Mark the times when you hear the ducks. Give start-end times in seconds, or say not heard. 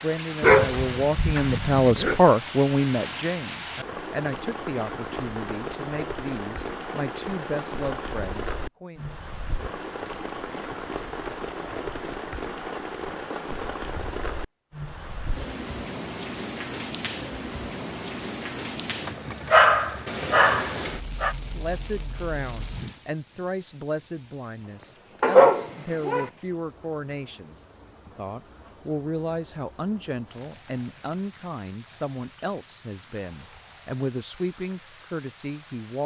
not heard.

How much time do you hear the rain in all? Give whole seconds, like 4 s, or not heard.
36 s.